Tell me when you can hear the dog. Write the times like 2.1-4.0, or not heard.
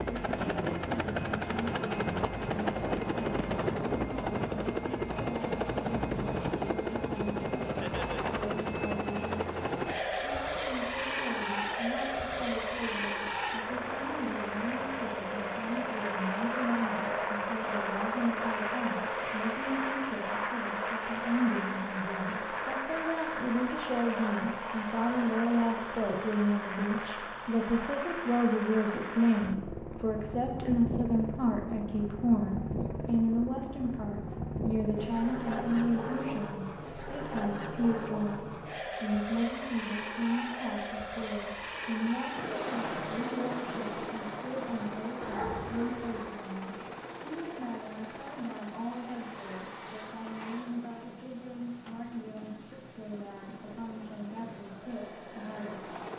45.2-46.2.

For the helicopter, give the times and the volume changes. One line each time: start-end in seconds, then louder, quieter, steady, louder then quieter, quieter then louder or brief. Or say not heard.
0.0-56.1 quieter.